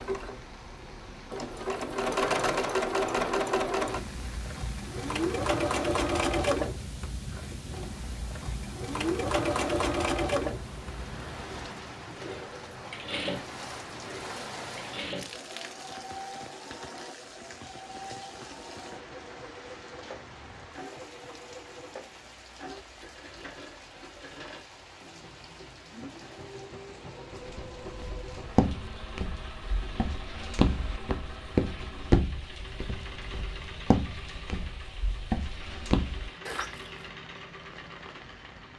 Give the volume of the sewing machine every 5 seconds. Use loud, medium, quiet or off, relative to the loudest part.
loud, loud, medium, quiet, quiet, quiet, quiet, quiet.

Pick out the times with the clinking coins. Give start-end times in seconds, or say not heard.
not heard.